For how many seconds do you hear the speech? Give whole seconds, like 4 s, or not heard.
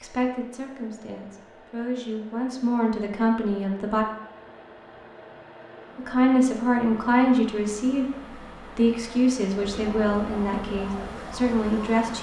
10 s.